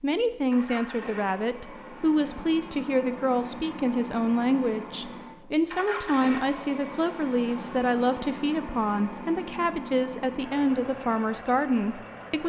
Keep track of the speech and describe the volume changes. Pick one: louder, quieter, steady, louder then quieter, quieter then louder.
steady.